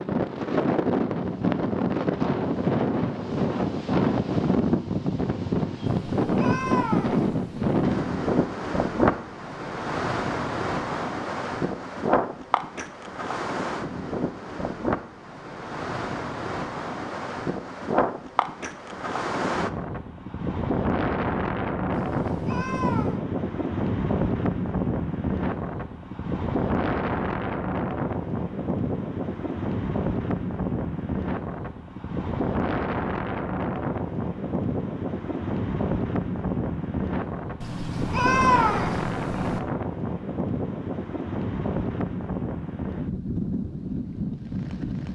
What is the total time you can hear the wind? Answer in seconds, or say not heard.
45 s.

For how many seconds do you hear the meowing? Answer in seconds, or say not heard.
5 s.